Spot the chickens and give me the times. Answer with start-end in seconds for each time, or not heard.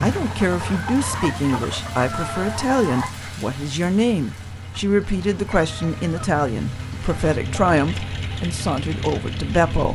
0.0-3.1.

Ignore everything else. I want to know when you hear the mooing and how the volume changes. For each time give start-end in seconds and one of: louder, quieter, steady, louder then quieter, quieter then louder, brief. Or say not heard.
not heard.